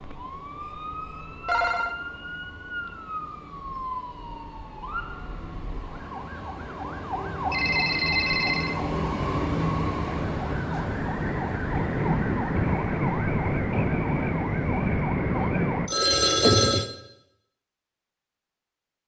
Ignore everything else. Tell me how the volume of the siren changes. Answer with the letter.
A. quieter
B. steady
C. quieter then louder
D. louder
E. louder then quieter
D.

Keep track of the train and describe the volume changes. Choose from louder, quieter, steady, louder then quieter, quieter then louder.
louder then quieter.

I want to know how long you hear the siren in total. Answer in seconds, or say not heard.
16 s.